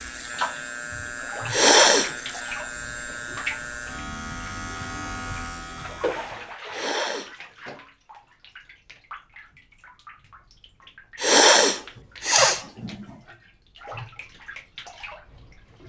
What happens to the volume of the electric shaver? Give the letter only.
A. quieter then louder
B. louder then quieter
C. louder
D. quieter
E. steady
E.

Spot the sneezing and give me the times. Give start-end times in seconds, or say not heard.
1.5-2.1, 6.7-7.3, 11.2-13.1.